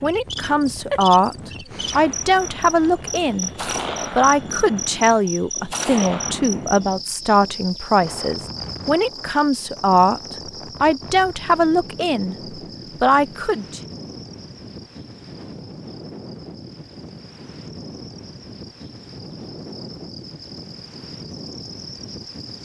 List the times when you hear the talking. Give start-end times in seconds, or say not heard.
0.0-1.4, 1.9-10.2, 10.8-13.8.